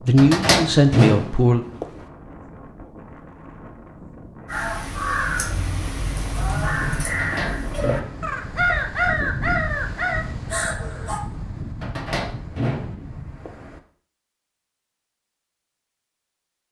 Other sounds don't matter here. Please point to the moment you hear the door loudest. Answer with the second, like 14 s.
1 s.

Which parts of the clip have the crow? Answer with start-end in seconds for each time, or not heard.
4.5-11.2.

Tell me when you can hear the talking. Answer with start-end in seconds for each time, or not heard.
0.1-1.6.